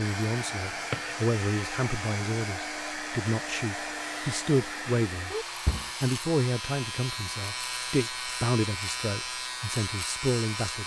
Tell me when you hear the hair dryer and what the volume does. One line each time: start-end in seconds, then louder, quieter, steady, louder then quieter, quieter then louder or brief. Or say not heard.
0.0-10.8 quieter.